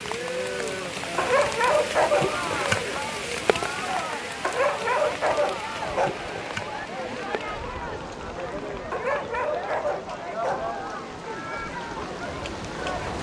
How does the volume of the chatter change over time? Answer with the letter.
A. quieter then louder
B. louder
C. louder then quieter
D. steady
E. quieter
D.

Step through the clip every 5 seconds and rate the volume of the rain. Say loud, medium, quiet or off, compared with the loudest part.
loud, medium, medium.